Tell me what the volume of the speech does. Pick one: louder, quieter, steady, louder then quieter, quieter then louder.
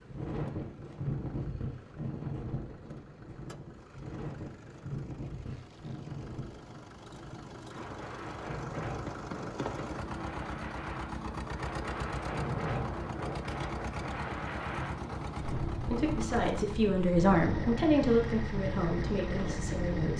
louder then quieter.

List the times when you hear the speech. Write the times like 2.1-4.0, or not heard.
15.7-20.1.